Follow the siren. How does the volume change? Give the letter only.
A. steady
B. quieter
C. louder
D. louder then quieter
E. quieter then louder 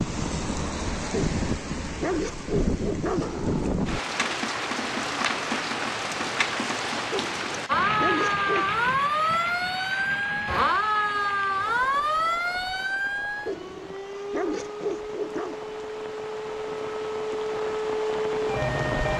E.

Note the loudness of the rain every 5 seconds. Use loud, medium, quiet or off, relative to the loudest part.
loud, loud, quiet, medium.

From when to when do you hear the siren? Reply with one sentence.
The siren can be heard from 7.7 to 19.1 s.